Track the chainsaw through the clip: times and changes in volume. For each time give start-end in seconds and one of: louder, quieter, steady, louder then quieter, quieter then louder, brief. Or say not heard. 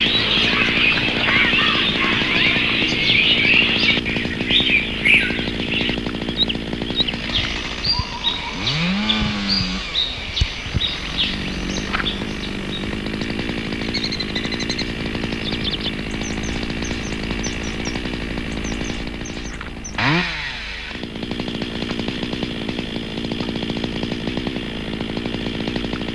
0.0-26.1 steady.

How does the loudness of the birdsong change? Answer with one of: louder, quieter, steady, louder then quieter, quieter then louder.
quieter.